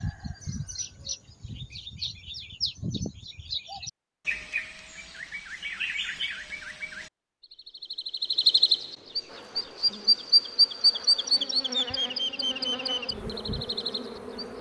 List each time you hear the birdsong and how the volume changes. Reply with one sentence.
The birdsong can be heard from 0.0 to 14.4 s, getting louder then quieter.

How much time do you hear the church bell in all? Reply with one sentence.
The church bell can't be heard in this clip.